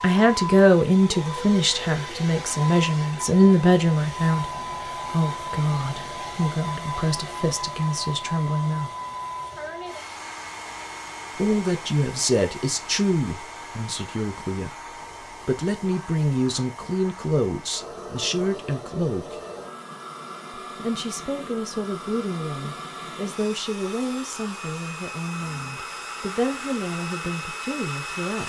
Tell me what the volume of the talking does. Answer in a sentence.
The volume of the talking goes down.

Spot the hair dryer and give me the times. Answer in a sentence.
The hair dryer can be heard from 0.0 to 28.4 s.